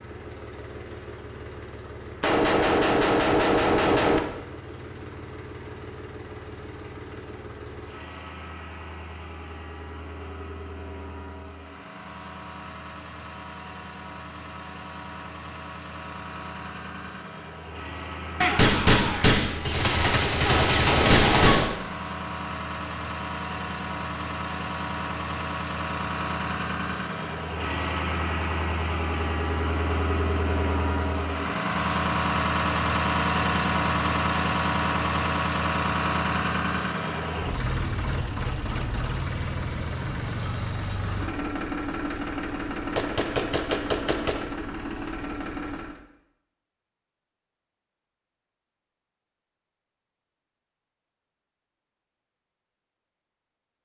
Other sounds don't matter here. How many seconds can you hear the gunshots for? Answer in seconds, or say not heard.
7 s.